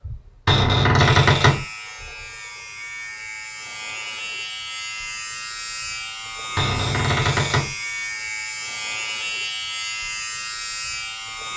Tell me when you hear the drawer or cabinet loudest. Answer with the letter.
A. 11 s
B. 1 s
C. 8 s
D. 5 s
B.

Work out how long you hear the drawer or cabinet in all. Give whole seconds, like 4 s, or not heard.
2 s.